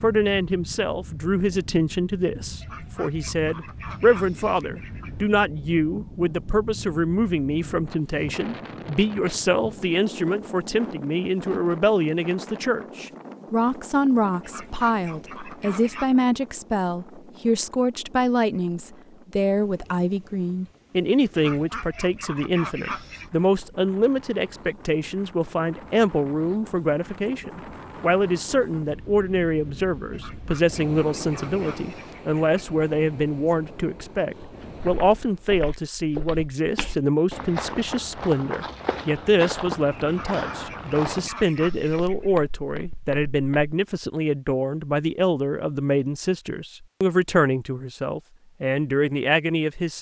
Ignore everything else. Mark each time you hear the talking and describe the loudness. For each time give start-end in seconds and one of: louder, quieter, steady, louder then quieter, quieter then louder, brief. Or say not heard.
0.0-49.9 steady.